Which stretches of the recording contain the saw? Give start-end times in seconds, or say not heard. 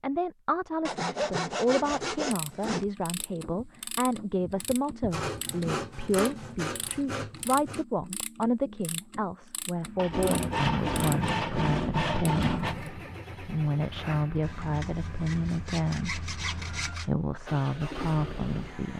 0.8-2.9, 5.1-7.8, 9.9-12.8, 14.4-17.1.